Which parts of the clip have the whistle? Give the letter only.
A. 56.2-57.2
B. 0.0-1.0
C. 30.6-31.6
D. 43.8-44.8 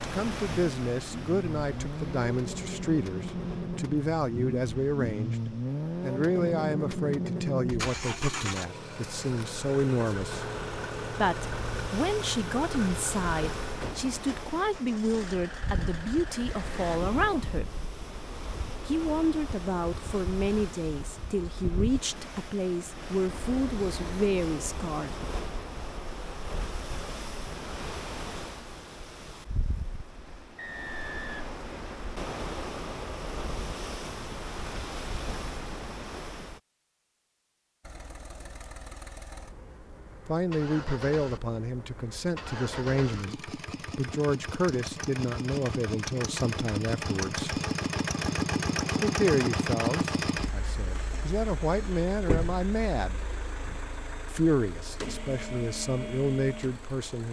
C.